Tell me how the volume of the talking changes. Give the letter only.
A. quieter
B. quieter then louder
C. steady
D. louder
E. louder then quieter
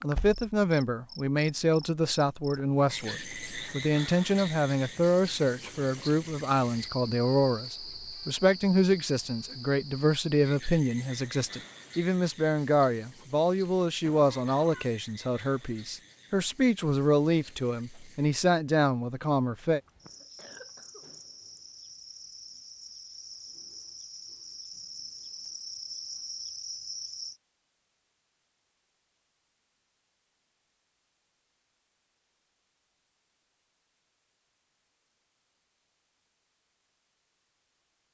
C.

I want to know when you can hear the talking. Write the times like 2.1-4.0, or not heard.
0.0-19.8.